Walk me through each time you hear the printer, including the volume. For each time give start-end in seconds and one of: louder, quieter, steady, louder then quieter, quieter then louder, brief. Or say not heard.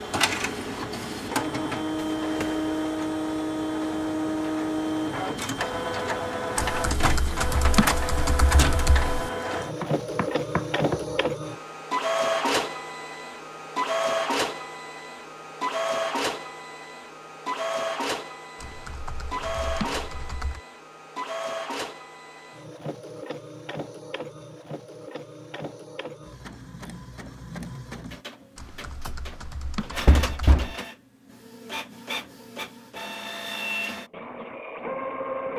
0.0-35.5 quieter.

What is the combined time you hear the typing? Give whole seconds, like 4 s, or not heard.
7 s.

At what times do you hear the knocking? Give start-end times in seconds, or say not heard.
9.8-11.0, 30.1-30.7.